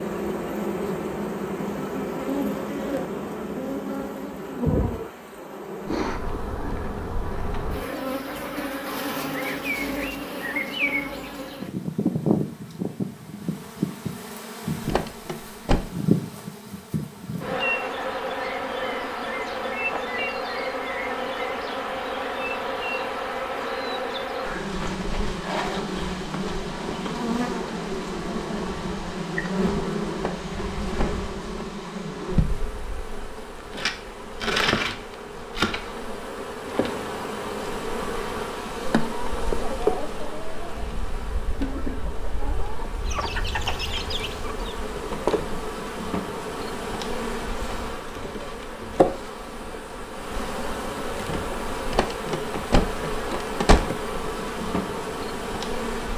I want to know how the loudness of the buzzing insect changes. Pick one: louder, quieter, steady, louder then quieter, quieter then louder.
steady.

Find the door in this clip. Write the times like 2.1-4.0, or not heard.
14.8-15.8, 30.1-31.7, 51.9-54.0.